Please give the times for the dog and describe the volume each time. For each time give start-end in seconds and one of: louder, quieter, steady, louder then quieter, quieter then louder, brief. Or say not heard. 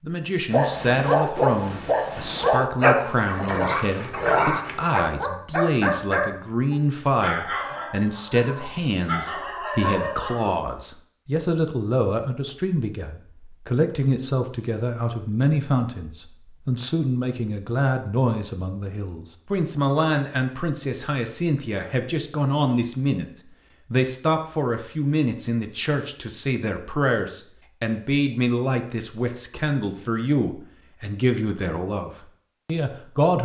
0.5-10.5 quieter.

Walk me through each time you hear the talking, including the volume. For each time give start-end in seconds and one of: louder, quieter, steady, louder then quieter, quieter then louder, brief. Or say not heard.
0.0-23.2 steady
23.9-33.4 steady.